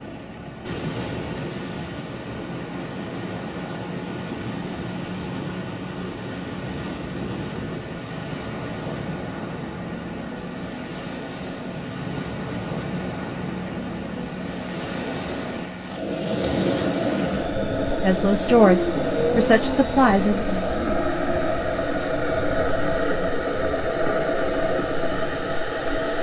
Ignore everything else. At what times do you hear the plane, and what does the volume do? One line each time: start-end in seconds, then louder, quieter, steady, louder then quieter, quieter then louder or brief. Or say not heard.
0.0-26.1 louder.